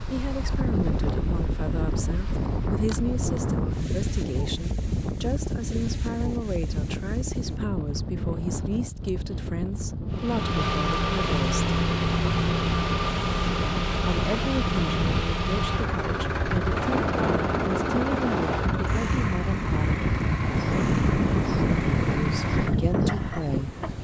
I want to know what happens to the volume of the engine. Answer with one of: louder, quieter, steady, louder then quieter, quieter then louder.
quieter.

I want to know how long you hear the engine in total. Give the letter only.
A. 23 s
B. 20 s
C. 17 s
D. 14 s
D.